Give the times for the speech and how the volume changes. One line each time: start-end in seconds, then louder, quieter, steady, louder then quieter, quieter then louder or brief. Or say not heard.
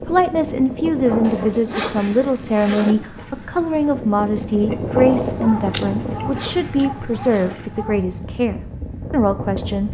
0.0-9.9 steady.